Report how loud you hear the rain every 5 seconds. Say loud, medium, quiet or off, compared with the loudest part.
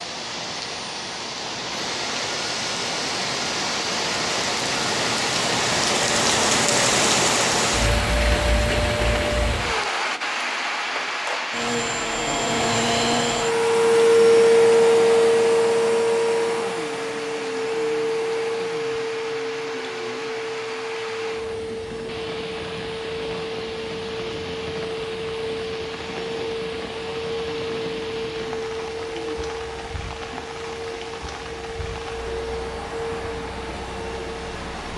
medium, loud, medium, quiet, quiet, quiet, quiet.